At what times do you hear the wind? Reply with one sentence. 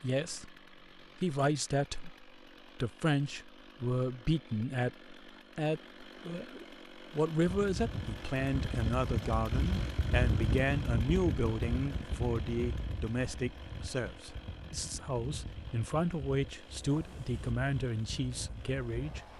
You can hear the wind from 7.5 to 19.3 s.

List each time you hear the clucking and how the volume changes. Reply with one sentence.
You can't hear the clucking here.